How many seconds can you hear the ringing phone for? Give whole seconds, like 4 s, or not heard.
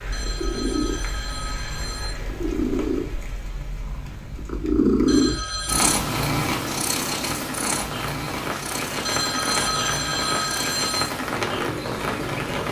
5 s.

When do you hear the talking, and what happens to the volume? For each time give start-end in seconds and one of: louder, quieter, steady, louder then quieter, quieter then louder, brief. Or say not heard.
not heard.